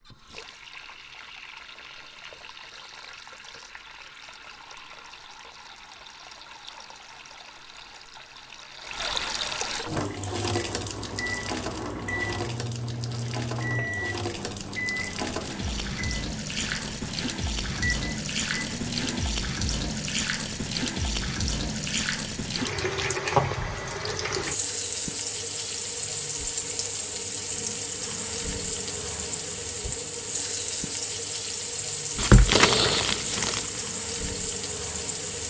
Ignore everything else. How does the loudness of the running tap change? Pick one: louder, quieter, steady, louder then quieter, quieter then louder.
louder.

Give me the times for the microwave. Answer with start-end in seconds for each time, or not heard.
9.9-19.2.